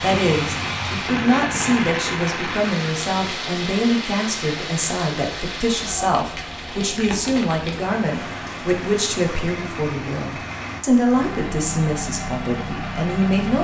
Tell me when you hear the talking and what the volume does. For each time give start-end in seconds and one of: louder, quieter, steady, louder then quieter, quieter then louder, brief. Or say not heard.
0.0-13.6 steady.